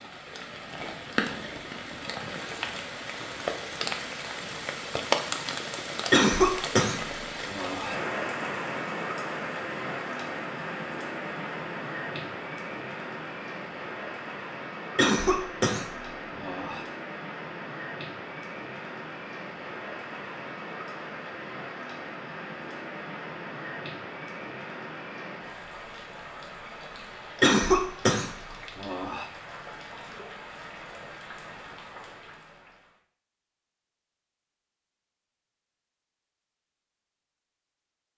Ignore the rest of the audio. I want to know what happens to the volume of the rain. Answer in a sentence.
The loudness of the rain goes down.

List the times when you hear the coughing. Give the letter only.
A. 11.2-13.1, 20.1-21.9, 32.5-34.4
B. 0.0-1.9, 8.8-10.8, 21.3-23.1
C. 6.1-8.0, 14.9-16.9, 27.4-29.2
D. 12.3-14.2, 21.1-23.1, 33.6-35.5
C.